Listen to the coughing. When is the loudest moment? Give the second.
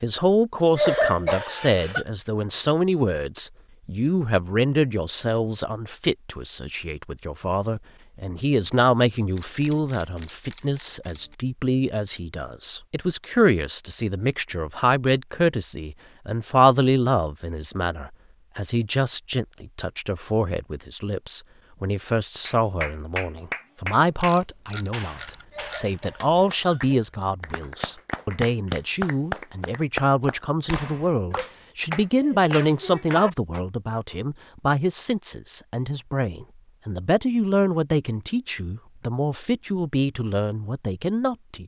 1 s.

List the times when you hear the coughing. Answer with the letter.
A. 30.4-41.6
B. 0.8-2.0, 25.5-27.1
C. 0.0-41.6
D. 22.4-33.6
B.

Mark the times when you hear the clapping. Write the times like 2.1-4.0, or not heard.
22.4-33.6.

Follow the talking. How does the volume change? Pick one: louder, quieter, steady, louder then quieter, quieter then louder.
steady.